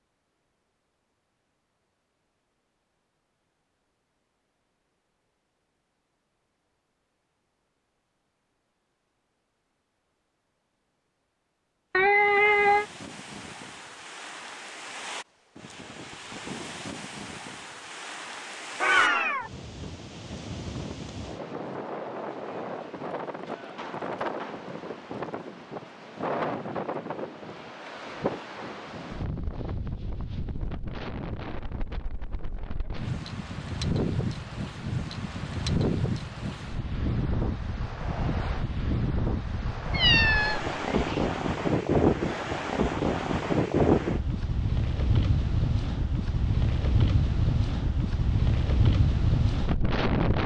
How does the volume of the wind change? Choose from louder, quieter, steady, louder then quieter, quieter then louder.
louder.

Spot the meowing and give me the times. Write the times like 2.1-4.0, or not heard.
11.9-12.8, 18.8-19.5, 39.9-41.3.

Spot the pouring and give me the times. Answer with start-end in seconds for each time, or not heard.
not heard.